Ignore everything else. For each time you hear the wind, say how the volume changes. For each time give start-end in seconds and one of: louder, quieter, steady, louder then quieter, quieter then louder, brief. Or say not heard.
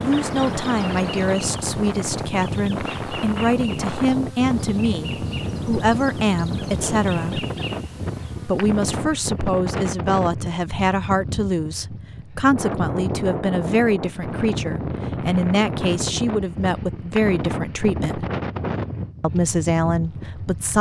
0.0-20.7 steady.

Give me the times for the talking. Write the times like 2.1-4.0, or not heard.
0.0-7.5, 8.4-18.2, 19.2-20.7.